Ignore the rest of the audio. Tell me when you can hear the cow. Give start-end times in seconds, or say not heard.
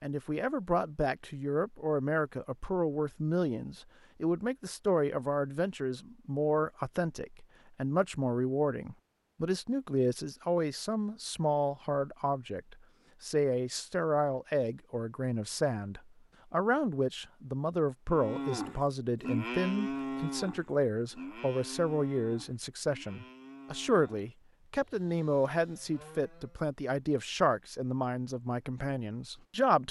18.1-26.6.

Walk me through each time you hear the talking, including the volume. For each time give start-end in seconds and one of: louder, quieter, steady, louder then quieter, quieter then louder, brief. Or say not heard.
0.0-29.8 steady.